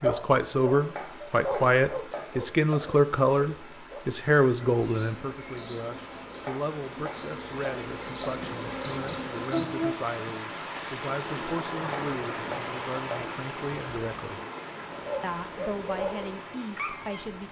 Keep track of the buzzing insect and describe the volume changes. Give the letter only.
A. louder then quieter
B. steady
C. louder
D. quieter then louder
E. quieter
C.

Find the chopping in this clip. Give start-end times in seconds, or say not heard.
0.9-2.8, 6.5-8.2, 11.9-13.3.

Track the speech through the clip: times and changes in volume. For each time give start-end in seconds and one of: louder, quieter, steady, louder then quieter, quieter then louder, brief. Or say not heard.
0.0-14.4 quieter
15.2-17.4 brief.